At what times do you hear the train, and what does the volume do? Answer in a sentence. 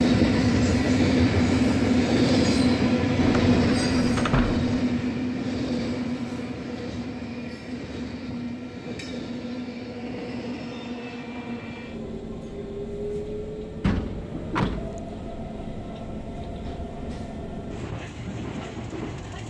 The train can be heard from 0.0 to 19.4 s, getting quieter.